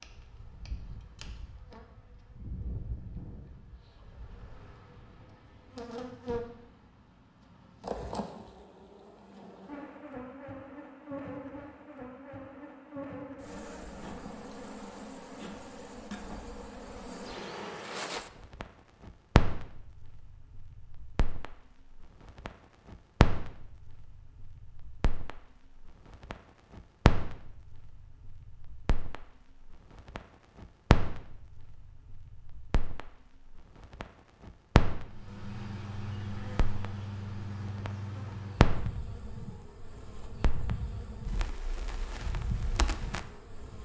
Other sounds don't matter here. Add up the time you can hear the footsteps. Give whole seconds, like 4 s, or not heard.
not heard.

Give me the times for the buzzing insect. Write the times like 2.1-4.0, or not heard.
0.0-18.1, 35.0-43.7.